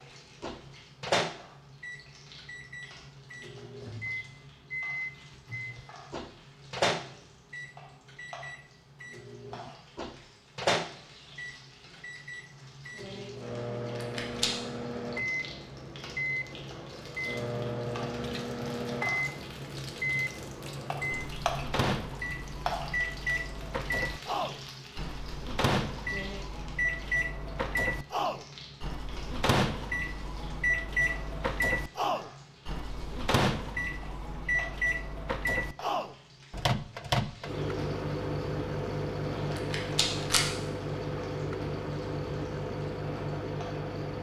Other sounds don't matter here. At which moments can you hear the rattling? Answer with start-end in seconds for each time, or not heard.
13.9-14.5, 39.5-40.5.